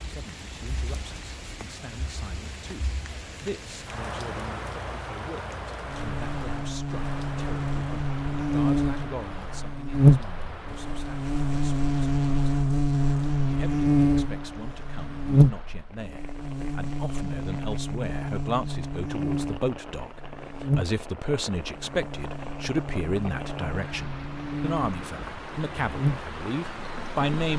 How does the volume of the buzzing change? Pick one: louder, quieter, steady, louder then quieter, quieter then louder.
quieter.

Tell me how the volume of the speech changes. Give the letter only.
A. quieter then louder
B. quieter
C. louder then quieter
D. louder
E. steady
D.